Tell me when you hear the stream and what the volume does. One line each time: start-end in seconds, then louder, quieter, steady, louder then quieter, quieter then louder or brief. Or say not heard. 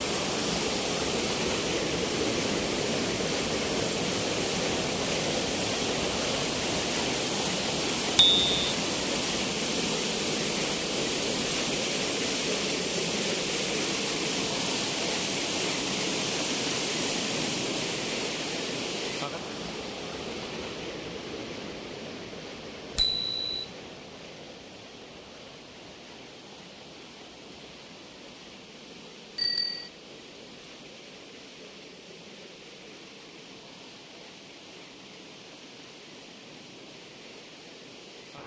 0.0-38.4 quieter.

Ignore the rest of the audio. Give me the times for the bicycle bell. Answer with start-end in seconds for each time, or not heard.
8.2-8.7, 22.9-23.6, 29.4-29.9.